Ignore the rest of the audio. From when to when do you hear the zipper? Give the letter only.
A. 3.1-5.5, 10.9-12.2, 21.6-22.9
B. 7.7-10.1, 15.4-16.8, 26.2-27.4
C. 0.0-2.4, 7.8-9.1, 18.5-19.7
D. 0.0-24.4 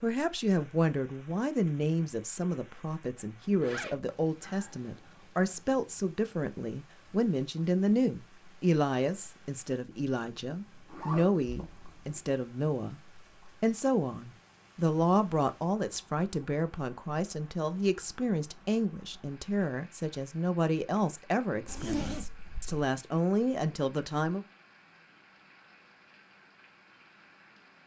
A.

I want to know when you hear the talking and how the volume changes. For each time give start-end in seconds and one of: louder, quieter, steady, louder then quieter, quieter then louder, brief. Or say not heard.
0.0-24.4 steady.